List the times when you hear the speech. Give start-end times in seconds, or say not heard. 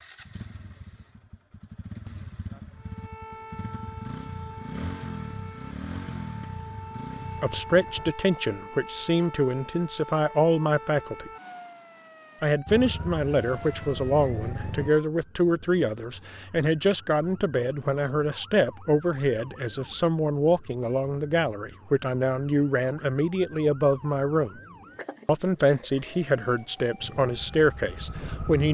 7.4-11.3, 12.4-24.6, 25.2-28.6.